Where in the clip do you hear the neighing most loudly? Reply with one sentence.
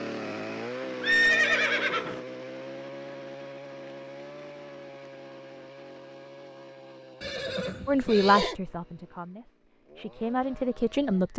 The loudest moment of the neighing is at 1 second.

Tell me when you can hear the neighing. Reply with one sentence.
You can hear the neighing from 1.0 to 2.2 s and from 7.2 to 8.6 s.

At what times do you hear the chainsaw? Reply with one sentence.
You can hear the chainsaw from 0.0 to 11.3 s.